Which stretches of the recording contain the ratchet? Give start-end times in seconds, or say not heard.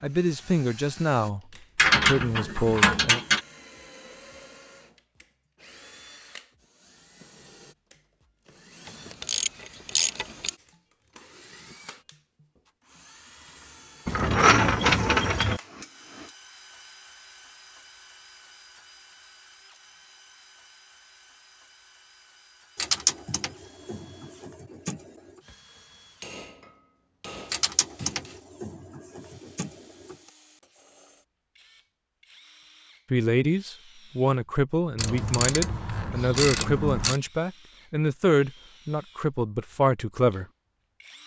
1.8-3.4, 8.8-10.5, 14.1-15.6, 22.8-25.0, 27.5-30.1, 35.0-37.2.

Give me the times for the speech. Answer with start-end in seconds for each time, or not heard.
0.0-3.2, 33.1-40.5.